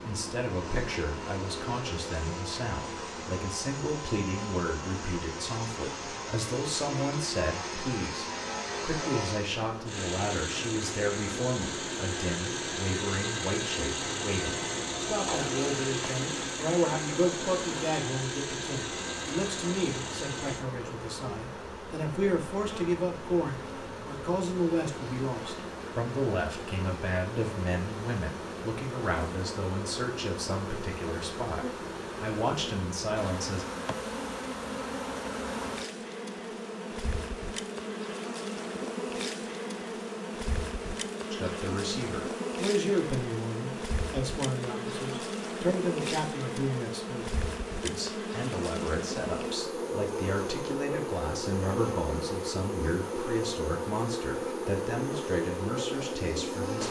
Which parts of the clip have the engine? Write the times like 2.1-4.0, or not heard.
0.0-20.6.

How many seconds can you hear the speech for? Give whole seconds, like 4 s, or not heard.
49 s.